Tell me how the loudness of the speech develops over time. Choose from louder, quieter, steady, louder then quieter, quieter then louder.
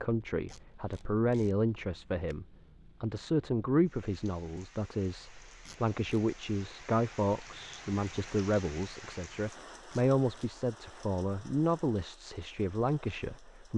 steady.